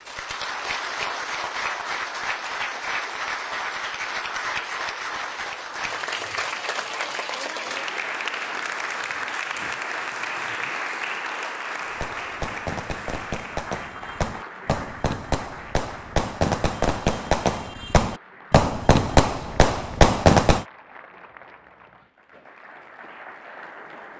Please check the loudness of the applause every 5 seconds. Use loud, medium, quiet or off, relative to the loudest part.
loud, loud, loud, quiet, quiet.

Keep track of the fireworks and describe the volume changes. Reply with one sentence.
The loudness of the fireworks goes up.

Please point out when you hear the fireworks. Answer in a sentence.
The fireworks can be heard from 11.8 to 20.6 s.